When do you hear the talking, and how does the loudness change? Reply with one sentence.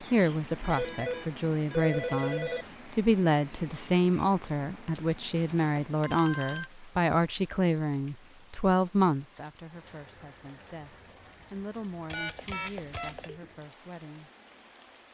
The talking can be heard from 0.0 to 14.3 s, getting quieter.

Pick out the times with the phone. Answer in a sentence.
You can hear the phone from 0.6 to 2.6 s, from 5.3 to 6.7 s and from 12.1 to 13.4 s.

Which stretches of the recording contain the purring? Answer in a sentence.
The purring can't be heard in this clip.